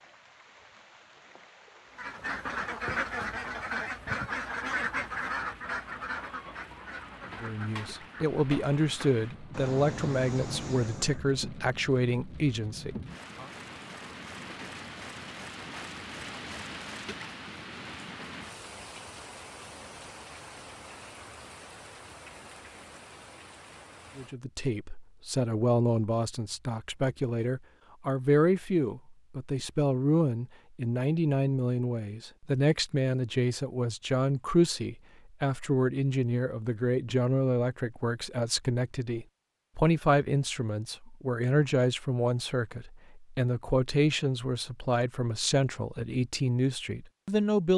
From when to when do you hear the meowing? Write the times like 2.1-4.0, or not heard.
not heard.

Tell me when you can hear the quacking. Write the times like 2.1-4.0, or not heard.
1.9-11.2.